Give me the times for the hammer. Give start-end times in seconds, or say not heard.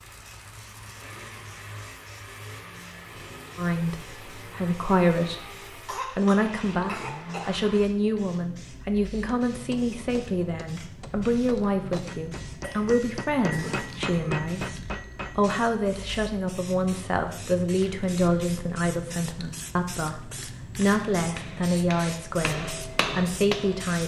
9.5-15.6, 20.8-24.0.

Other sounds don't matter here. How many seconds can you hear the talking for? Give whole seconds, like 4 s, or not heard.
19 s.